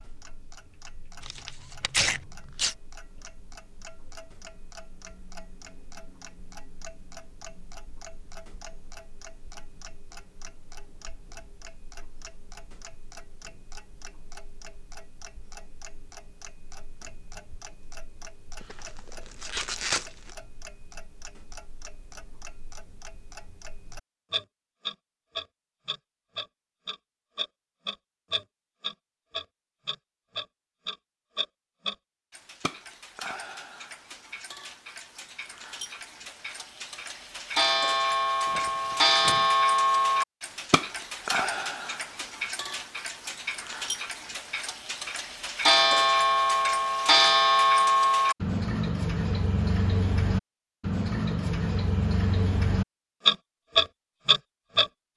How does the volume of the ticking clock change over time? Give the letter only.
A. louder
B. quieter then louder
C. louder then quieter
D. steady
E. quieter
A.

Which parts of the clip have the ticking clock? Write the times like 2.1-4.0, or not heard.
0.0-54.9.